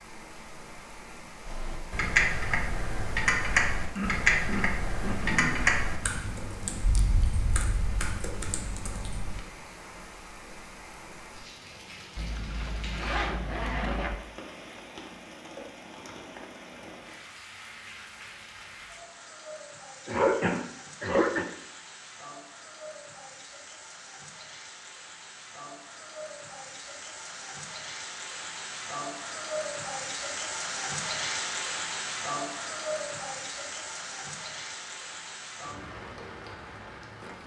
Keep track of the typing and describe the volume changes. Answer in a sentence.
The loudness of the typing goes down.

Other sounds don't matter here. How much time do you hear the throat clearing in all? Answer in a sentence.
The throat clearing can be heard for 3 seconds in total.